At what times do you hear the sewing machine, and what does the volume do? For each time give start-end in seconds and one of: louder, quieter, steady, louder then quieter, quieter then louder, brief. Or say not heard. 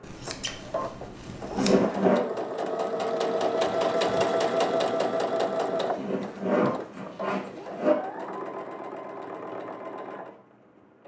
0.0-11.0 louder then quieter.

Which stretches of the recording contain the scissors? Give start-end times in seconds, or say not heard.
0.0-1.8.